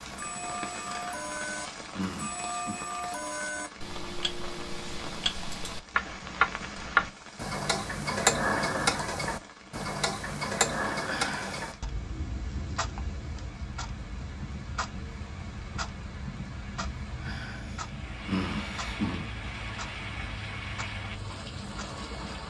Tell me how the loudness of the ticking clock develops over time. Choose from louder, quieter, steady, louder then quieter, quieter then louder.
louder then quieter.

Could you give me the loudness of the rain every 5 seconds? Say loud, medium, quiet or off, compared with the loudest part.
loud, medium, medium, loud, loud.